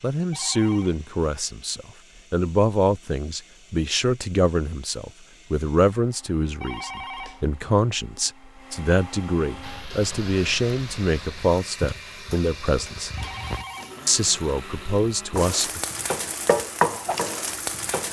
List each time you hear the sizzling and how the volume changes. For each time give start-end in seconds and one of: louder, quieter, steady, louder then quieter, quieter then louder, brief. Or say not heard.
9.6-18.0 louder.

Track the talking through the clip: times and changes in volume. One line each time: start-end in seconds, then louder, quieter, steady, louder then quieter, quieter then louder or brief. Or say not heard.
0.0-13.1 steady
14.1-15.8 brief.